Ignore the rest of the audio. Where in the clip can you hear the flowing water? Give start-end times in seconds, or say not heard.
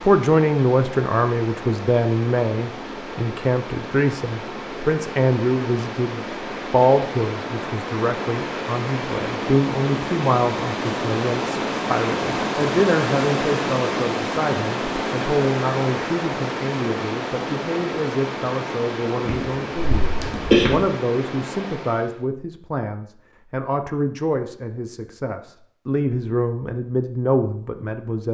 0.0-22.2.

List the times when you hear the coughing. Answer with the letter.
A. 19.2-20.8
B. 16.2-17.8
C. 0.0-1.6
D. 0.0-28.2
A.